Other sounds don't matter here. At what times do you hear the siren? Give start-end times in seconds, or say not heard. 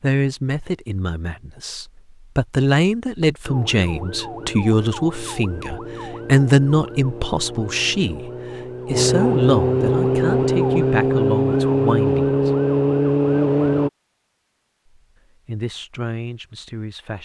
3.5-13.9.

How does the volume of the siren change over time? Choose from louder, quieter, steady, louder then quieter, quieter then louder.
louder.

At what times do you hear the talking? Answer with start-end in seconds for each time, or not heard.
0.0-12.5, 15.4-17.1.